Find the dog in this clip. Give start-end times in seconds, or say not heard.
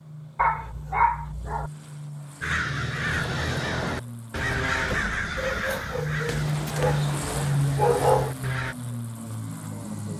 0.3-1.7, 5.3-8.3.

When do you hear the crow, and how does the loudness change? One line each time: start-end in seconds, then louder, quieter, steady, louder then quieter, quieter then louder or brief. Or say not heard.
2.4-8.8 quieter.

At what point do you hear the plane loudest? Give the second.
7 s.